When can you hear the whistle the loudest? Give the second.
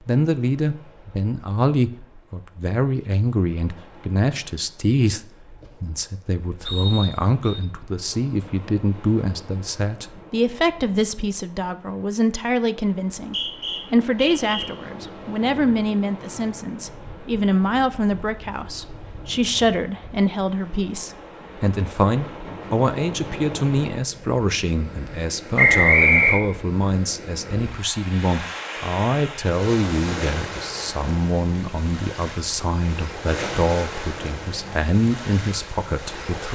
26 s.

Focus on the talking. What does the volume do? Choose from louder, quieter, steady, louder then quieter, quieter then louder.
steady.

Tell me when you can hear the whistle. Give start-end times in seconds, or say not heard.
6.7-7.6, 13.2-14.7, 25.6-26.4.